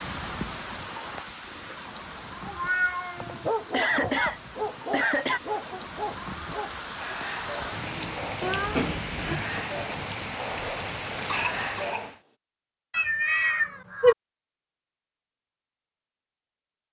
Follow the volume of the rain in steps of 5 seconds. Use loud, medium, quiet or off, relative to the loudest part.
medium, loud, loud, off.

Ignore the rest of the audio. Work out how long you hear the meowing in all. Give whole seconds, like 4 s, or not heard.
3 s.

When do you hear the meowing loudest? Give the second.
14 s.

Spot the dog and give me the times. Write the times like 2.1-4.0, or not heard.
3.1-12.2.